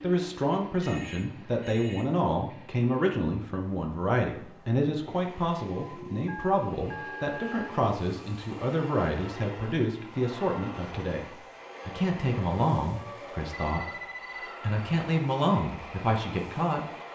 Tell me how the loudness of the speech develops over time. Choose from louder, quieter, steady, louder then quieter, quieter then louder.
steady.